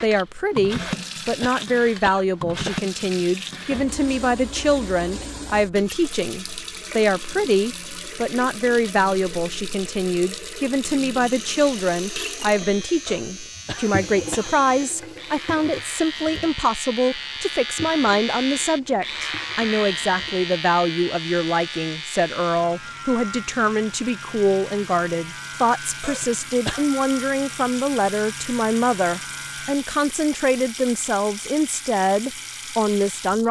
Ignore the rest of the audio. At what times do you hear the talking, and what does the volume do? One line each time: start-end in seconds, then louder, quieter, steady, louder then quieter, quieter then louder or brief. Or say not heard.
0.0-33.4 steady.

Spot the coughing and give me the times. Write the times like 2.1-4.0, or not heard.
0.8-2.8, 13.1-14.5, 26.0-26.9.